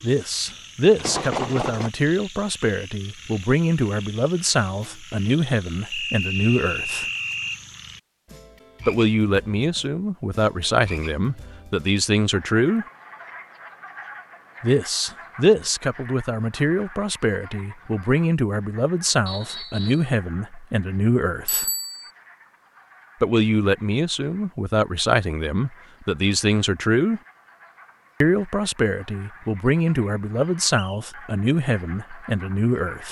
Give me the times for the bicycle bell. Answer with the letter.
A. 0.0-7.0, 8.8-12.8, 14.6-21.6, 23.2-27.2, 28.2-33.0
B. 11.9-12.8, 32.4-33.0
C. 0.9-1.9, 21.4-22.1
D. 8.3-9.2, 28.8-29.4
C.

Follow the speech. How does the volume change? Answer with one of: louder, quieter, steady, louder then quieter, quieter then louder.
steady.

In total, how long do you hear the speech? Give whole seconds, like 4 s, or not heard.
27 s.